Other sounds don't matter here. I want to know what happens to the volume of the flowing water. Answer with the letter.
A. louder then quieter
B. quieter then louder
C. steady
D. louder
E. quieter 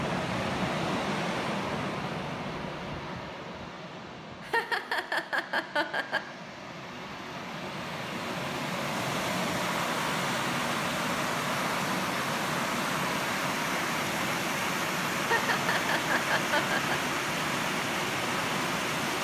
B.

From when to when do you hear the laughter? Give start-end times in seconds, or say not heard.
4.4-6.2, 15.2-16.9.